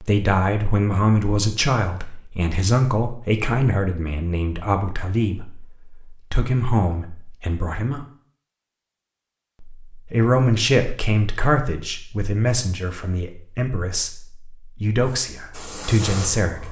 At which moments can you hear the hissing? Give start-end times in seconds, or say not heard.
15.0-16.6.